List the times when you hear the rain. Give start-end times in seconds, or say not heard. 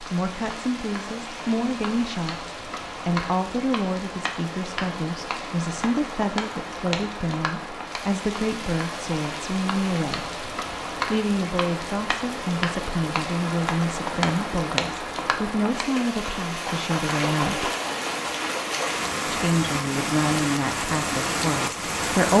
0.0-22.3.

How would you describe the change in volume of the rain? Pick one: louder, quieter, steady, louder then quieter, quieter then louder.
louder.